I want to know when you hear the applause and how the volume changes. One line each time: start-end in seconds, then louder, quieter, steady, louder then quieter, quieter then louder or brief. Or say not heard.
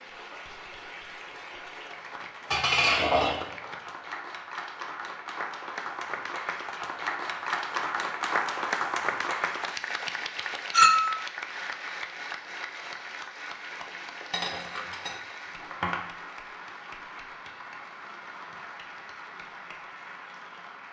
0.0-20.8 louder then quieter.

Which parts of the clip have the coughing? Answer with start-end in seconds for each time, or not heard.
not heard.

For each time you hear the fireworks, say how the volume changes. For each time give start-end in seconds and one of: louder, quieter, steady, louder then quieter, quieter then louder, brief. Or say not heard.
not heard.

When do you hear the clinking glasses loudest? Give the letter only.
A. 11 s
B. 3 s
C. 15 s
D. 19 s
A.